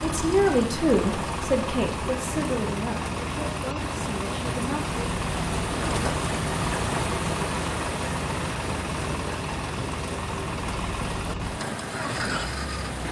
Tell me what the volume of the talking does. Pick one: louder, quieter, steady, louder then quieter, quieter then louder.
quieter.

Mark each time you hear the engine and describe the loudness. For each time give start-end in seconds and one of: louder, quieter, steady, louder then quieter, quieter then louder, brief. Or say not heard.
0.0-13.0 steady.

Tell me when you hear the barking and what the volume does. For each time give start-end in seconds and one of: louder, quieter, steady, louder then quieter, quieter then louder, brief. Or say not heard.
not heard.